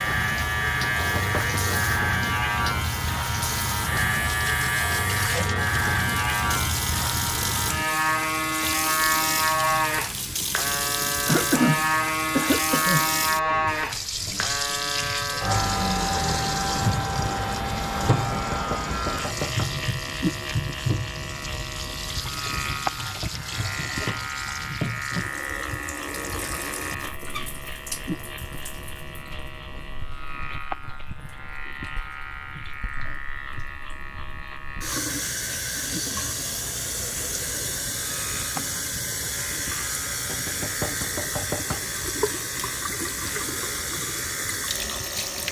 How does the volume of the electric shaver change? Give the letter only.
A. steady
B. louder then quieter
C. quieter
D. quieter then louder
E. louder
C.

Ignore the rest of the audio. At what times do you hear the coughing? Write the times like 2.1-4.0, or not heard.
11.2-13.1.